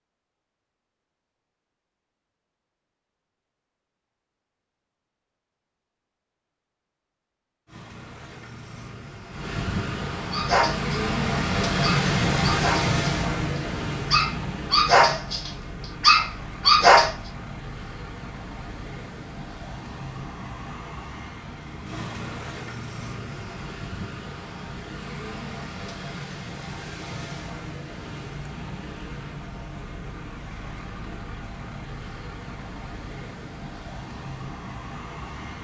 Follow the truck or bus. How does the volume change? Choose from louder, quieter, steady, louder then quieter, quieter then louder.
quieter.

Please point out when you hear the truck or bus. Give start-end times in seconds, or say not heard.
7.7-35.5.